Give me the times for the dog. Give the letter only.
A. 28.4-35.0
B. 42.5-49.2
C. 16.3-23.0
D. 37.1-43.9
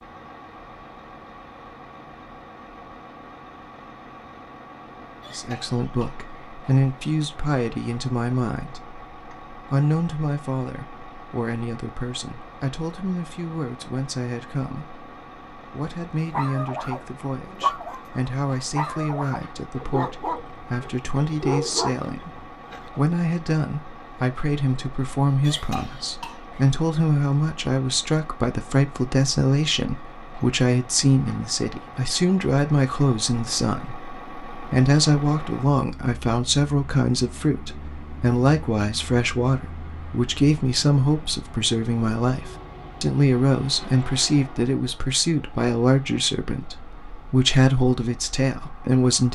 C.